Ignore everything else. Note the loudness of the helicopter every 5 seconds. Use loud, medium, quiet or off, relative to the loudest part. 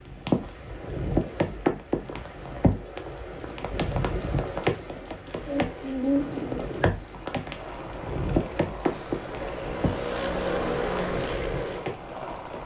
off, medium, loud.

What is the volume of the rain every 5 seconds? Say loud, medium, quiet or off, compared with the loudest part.
loud, loud, medium.